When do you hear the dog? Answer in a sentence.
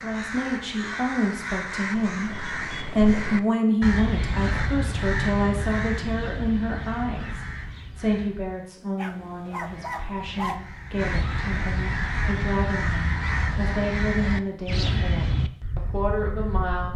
The dog can be heard from 8.9 to 10.6 s.